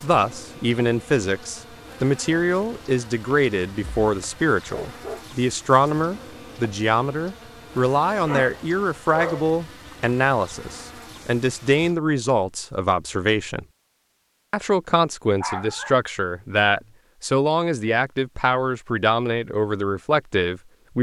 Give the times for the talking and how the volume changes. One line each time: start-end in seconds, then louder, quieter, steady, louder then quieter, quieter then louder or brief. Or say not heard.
0.0-13.7 steady
14.5-20.9 steady.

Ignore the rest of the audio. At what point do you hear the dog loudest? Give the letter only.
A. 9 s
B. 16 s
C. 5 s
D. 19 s
A.